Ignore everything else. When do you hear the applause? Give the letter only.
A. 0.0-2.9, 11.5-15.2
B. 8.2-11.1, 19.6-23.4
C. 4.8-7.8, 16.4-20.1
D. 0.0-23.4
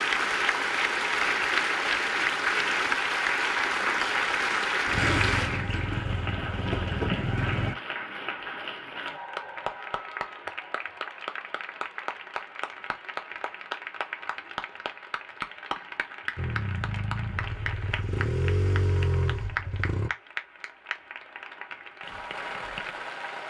D.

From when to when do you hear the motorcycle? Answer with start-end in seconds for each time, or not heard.
4.8-7.8, 16.4-20.1.